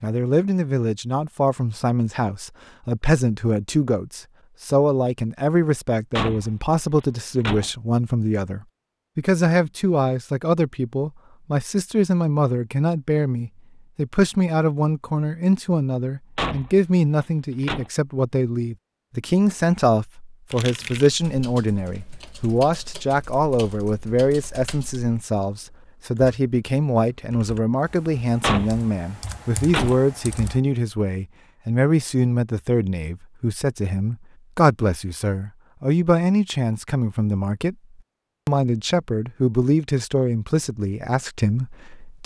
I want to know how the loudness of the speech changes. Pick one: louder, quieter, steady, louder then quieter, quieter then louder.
steady.